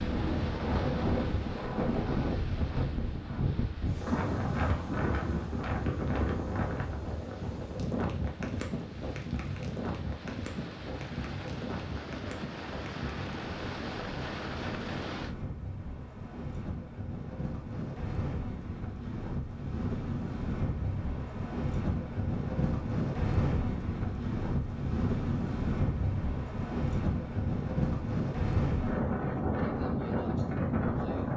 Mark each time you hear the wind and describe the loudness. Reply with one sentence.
The wind can be heard from 0.0 to 31.3 s, getting quieter then louder.